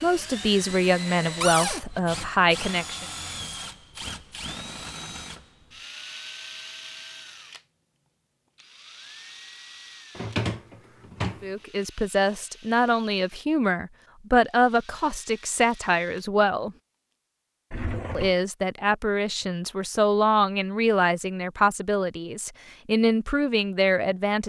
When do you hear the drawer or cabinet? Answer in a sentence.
The drawer or cabinet can be heard from 1.4 to 1.8 s, from 10.2 to 11.4 s and from 17.7 to 18.4 s.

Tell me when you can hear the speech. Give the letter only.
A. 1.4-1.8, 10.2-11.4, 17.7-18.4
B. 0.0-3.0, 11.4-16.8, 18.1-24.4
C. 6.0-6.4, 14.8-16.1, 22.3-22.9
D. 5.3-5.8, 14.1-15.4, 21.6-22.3
B.